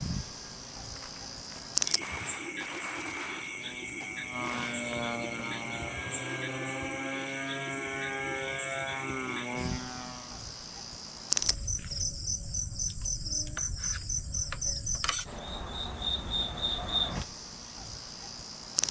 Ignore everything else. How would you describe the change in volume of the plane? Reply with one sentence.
The volume of the plane goes up.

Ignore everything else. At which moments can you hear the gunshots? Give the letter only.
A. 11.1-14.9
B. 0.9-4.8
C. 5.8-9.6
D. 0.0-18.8
B.